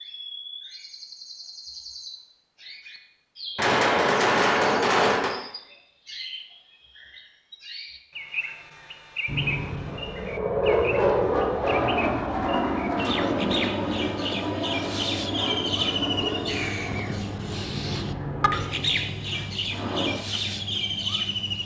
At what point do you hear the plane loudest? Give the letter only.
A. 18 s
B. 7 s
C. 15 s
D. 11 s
D.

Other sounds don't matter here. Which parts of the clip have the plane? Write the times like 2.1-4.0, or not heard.
9.2-20.1.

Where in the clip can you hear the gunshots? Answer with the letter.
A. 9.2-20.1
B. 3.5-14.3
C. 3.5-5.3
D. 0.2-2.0
C.